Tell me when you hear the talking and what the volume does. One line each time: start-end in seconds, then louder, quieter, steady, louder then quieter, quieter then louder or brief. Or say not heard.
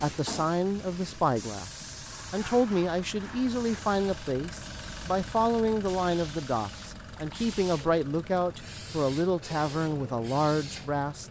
0.0-11.2 steady.